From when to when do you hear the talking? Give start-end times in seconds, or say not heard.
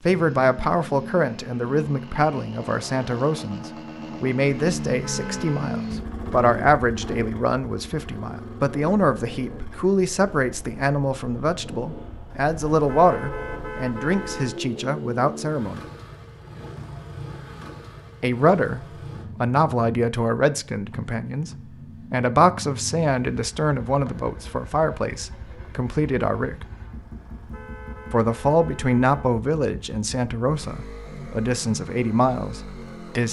0.0-15.8, 18.2-26.6, 28.1-33.2.